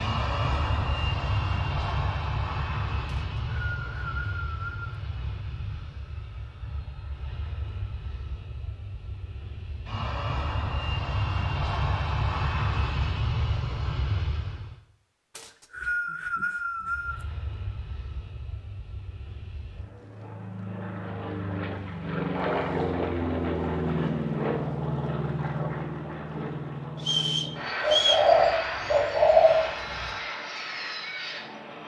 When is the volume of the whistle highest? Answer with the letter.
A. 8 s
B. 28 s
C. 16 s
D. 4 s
B.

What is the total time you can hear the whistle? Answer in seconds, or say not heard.
5 s.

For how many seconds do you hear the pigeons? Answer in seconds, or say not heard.
2 s.